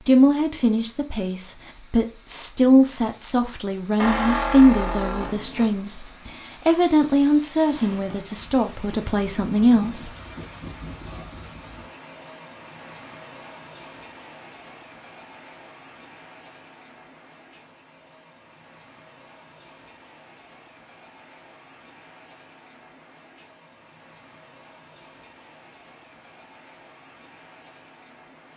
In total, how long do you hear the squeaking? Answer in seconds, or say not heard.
2 s.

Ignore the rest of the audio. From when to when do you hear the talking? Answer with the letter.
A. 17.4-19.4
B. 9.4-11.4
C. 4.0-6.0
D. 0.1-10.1
D.